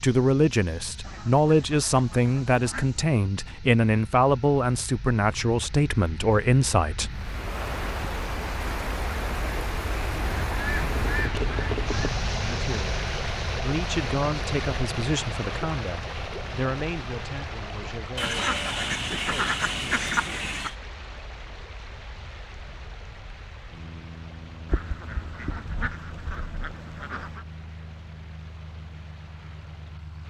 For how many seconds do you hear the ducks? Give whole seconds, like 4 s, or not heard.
9 s.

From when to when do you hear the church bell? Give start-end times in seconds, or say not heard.
not heard.